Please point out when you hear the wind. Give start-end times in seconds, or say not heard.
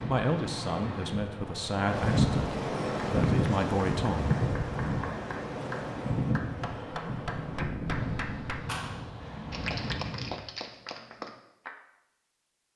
0.0-10.4.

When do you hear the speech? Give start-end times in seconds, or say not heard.
0.1-4.3.